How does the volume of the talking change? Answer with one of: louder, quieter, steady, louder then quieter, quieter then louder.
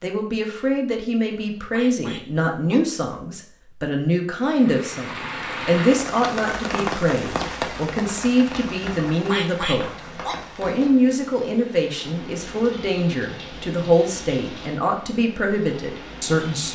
steady.